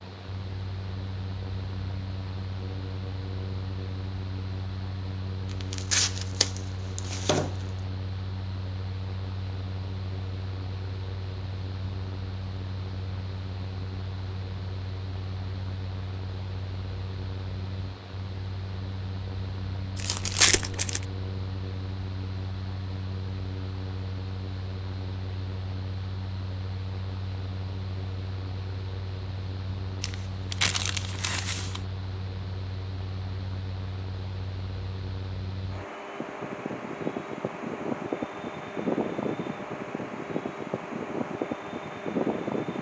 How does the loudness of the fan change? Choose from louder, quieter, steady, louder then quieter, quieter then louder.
louder.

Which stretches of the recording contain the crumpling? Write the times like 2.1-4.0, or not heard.
5.6-7.5, 19.9-21.1, 30.0-31.8.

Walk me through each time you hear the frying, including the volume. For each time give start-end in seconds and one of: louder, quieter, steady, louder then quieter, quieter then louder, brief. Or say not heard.
not heard.